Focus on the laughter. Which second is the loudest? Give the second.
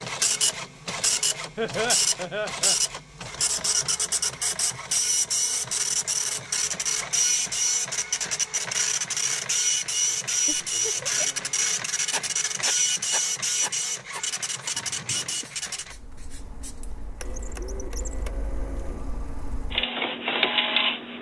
2 s.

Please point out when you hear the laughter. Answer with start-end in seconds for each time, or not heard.
1.6-2.8, 10.4-11.4, 14.8-15.4.